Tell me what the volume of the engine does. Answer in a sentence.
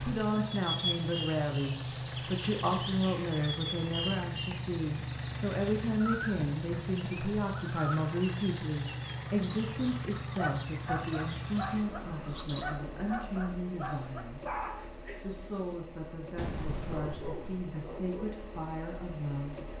The volume of the engine goes down.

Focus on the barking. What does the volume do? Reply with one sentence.
The loudness of the barking goes down, then up.